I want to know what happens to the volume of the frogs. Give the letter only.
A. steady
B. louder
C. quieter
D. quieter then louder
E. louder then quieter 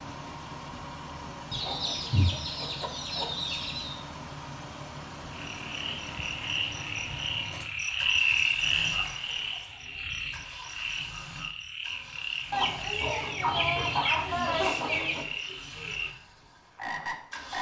E.